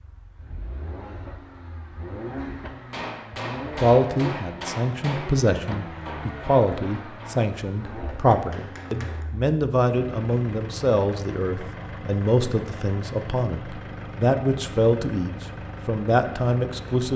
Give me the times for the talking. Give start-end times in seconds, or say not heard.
3.6-17.1.